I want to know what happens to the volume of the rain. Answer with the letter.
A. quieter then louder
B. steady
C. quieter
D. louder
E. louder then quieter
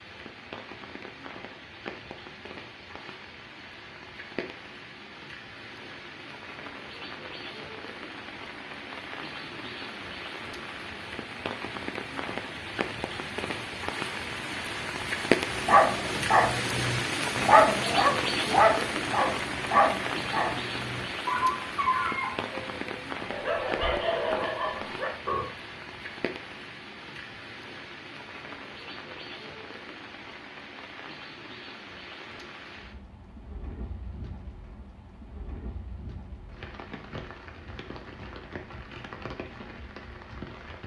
E.